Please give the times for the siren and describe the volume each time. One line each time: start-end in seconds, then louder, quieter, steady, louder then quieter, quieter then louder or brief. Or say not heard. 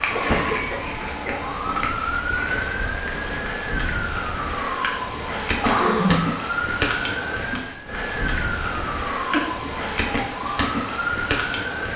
0.0-11.9 steady.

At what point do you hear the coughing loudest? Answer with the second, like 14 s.
6 s.